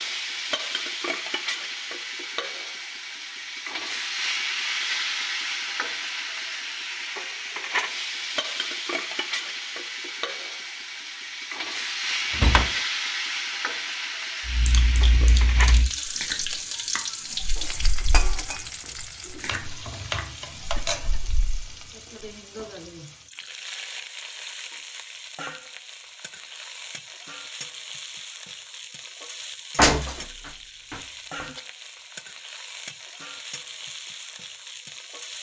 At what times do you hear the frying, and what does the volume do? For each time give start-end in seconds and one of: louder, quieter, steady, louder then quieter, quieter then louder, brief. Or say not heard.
0.0-35.3 quieter.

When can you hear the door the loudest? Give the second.
30 s.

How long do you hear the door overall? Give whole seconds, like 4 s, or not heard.
2 s.